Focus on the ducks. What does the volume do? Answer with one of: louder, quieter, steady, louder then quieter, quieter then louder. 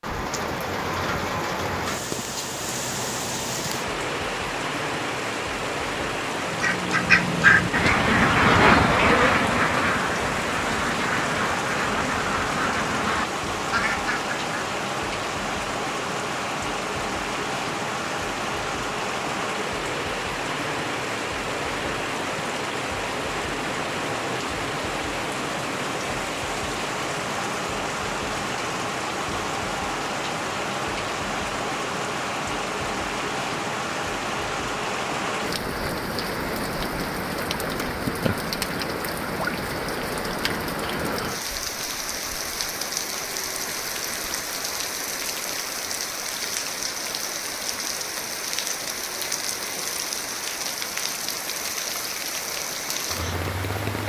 quieter.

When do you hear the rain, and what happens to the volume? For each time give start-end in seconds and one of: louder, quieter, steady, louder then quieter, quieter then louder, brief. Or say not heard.
0.0-54.0 steady.